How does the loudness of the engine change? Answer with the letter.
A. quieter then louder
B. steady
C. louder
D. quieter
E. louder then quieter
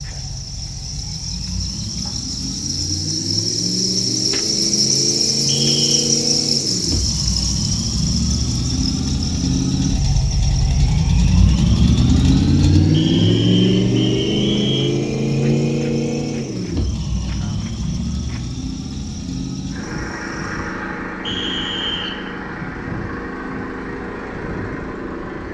E.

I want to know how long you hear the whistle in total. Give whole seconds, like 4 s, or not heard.
4 s.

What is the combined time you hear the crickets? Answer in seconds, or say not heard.
21 s.